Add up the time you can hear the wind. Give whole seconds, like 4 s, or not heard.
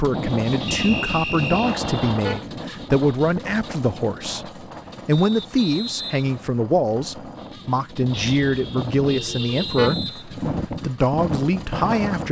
12 s.